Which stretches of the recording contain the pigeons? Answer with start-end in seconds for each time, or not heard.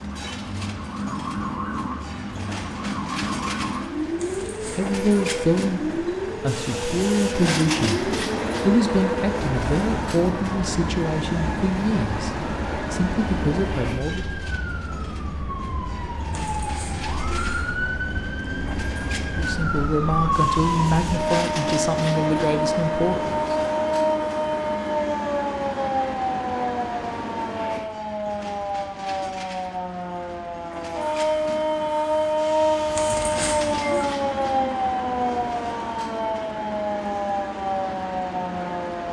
not heard.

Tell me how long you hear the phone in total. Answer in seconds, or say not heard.
3 s.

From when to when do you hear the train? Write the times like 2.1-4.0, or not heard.
0.0-39.0.